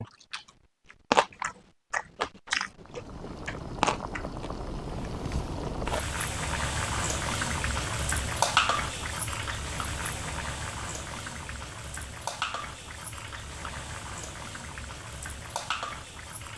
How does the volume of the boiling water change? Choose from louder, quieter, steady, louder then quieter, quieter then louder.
louder then quieter.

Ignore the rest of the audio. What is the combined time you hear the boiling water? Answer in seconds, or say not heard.
14 s.